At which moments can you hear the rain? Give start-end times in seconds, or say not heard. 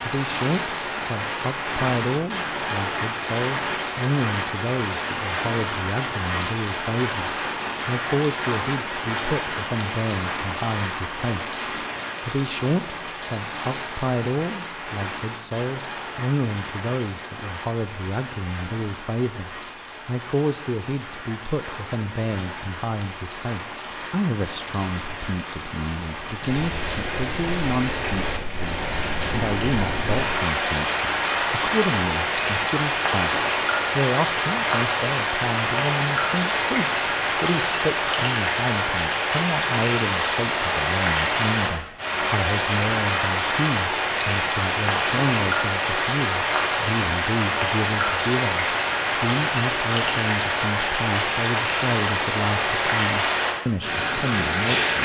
0.0-55.0.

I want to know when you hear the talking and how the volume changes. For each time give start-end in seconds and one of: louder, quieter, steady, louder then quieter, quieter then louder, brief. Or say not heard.
0.0-55.0 steady.